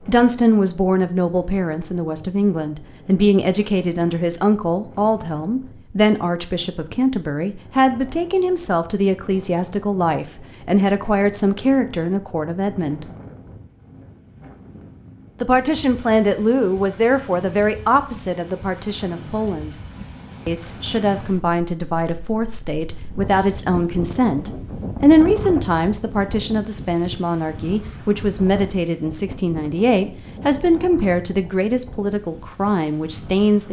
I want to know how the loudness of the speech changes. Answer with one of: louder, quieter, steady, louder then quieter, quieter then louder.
steady.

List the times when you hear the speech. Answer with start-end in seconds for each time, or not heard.
0.1-13.1, 15.4-19.8, 20.4-33.6.